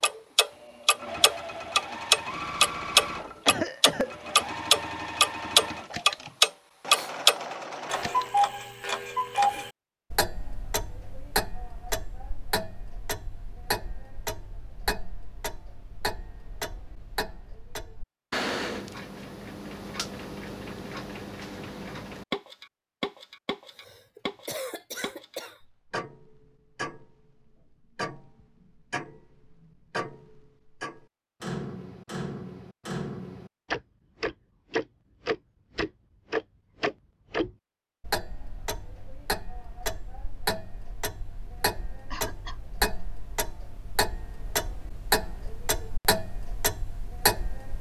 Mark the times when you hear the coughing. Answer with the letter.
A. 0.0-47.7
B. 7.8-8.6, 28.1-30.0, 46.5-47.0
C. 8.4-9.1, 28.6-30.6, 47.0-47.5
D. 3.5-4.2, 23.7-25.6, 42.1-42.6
D.